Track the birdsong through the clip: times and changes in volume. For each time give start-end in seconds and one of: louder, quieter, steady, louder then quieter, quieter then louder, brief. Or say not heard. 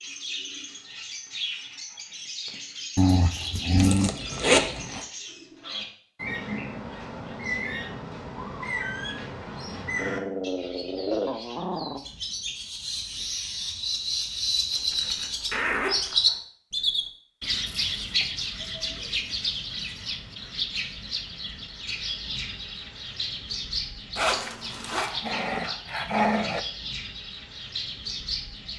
0.0-28.7 louder then quieter.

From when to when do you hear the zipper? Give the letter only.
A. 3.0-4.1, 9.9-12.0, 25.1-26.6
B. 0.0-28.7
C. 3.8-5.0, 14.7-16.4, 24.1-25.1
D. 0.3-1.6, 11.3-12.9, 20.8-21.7
C.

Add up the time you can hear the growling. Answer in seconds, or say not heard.
5 s.